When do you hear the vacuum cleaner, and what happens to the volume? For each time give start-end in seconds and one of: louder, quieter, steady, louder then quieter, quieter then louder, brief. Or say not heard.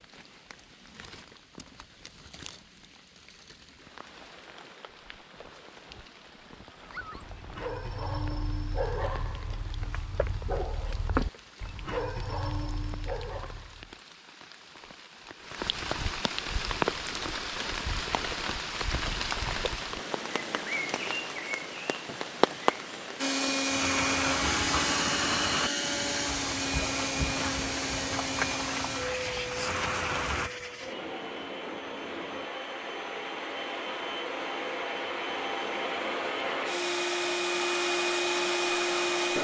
23.1-39.3 quieter then louder.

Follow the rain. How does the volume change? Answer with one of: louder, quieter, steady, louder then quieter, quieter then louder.
louder.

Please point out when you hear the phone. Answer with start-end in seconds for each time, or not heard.
not heard.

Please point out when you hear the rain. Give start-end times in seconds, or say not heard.
0.0-30.5.